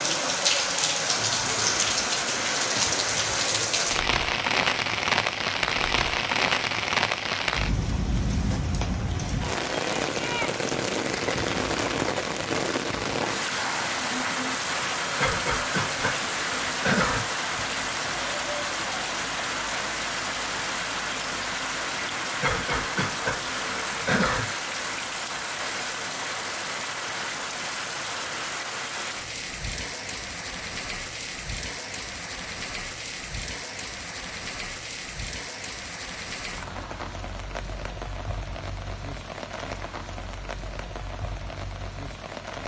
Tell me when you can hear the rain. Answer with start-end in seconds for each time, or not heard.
0.0-42.6.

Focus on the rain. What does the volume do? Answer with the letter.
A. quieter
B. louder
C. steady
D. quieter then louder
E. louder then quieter
A.